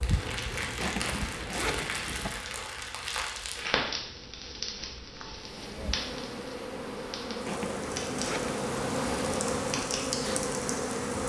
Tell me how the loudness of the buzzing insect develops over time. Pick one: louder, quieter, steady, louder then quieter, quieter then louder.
quieter then louder.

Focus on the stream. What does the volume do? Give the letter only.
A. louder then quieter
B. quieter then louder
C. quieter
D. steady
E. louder
E.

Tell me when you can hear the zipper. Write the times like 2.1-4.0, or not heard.
0.8-2.3, 7.5-8.6.